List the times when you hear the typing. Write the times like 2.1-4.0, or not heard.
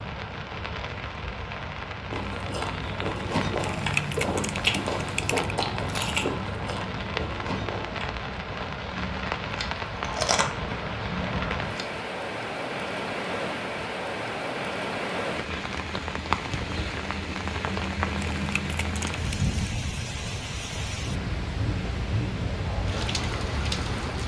3.5-5.5, 18.1-19.6.